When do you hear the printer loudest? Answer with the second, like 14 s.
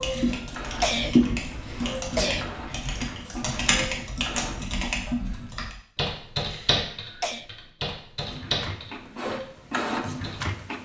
10 s.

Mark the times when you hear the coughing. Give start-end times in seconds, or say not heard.
0.0-2.5, 6.4-7.5.